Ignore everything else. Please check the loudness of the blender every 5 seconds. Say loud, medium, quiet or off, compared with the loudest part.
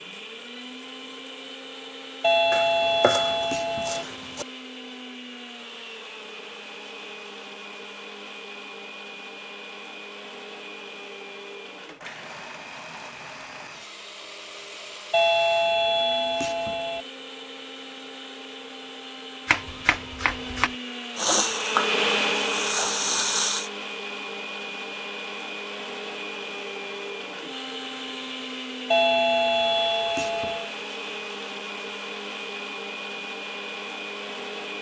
medium, medium, medium, medium, loud, medium, medium.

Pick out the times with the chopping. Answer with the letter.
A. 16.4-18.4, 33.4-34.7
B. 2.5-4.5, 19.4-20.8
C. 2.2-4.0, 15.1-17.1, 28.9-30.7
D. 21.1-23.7
B.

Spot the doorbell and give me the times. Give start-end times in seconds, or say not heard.
2.2-4.0, 15.1-17.1, 28.9-30.7.